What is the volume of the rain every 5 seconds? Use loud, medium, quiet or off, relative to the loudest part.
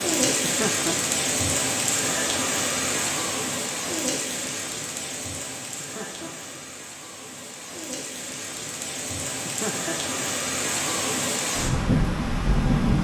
loud, medium, loud.